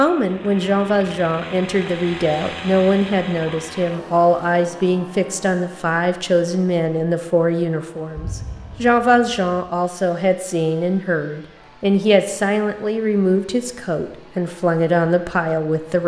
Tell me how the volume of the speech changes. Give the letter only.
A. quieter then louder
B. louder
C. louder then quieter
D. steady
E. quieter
D.